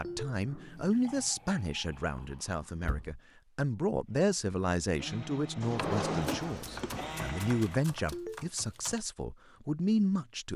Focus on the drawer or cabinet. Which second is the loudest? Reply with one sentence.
The loudest moment of the drawer or cabinet is at 6 seconds.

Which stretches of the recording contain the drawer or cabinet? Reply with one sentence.
The drawer or cabinet can be heard from 2.8 to 3.2 s and from 5.6 to 7.0 s.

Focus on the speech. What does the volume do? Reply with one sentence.
The volume of the speech stays about the same.